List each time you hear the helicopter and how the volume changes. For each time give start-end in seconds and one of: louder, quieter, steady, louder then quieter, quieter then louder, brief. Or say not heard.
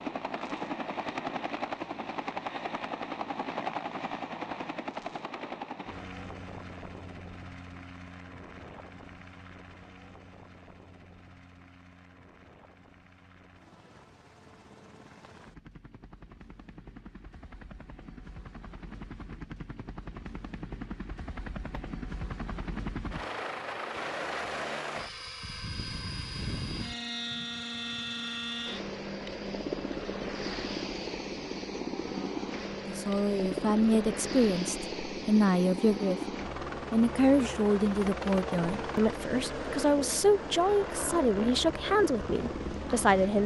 0.0-43.4 quieter then louder.